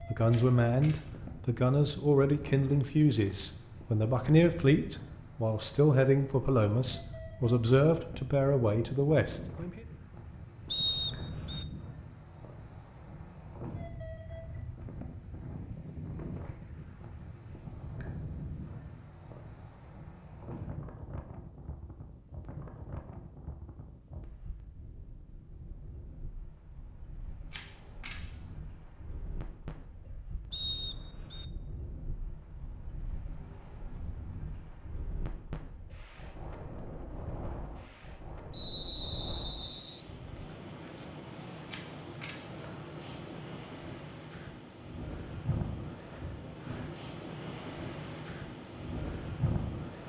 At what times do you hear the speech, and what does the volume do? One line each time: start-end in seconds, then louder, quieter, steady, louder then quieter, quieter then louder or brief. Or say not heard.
0.1-9.8 steady.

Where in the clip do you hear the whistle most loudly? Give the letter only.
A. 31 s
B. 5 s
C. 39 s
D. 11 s
D.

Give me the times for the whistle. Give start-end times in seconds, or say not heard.
10.7-11.7, 30.5-31.4, 38.5-40.0.